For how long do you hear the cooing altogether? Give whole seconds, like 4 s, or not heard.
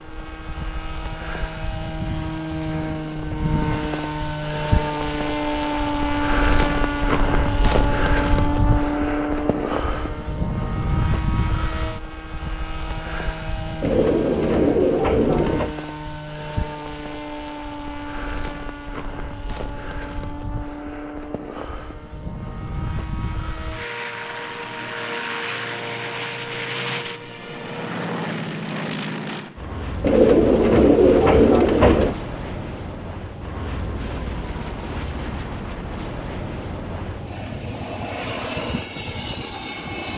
4 s.